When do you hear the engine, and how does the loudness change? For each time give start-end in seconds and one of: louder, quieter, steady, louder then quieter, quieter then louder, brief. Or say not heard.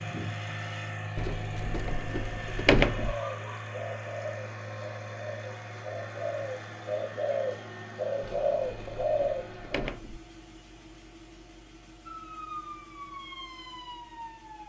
0.0-14.6 quieter.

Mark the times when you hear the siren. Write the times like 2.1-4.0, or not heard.
12.1-14.6.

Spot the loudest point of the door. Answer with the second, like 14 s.
3 s.